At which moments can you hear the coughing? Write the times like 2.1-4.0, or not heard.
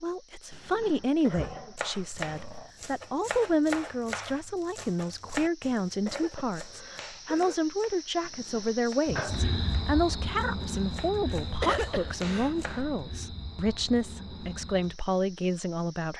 1.1-1.6, 5.8-7.7, 11.4-12.6.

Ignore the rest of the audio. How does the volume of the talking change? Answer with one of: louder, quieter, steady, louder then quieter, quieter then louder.
steady.